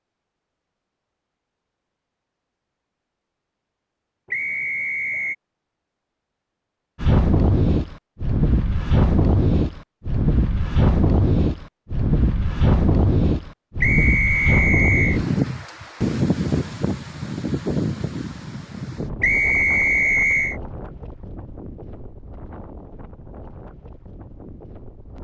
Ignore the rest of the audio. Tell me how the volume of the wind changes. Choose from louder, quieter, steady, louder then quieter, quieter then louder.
quieter.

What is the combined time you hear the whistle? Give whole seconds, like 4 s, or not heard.
4 s.